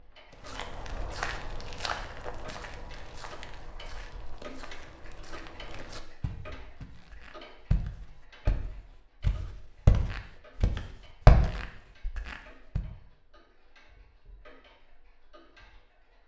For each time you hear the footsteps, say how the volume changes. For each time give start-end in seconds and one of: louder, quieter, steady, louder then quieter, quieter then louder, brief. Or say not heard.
0.3-12.8 quieter then louder.